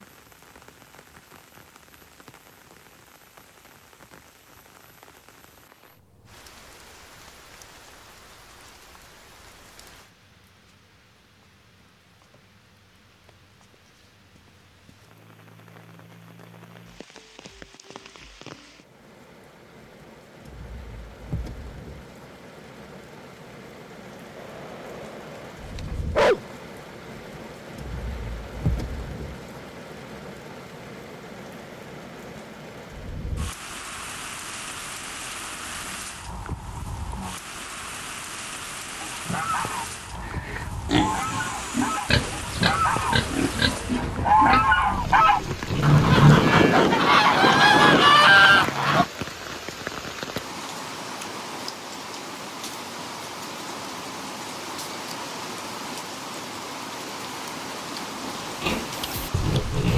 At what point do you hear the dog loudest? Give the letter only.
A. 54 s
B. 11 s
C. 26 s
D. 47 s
C.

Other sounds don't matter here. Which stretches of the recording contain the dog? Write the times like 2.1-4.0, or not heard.
24.4-26.4.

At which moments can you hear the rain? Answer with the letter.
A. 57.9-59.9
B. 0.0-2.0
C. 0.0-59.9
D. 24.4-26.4
C.